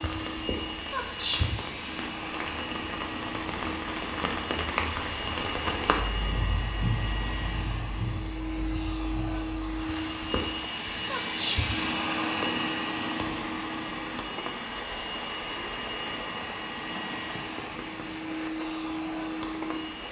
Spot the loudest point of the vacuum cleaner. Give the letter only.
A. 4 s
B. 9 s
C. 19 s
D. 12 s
D.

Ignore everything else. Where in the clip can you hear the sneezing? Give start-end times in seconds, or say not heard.
0.9-1.6, 11.1-11.7.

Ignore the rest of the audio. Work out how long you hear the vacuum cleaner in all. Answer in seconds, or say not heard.
20 s.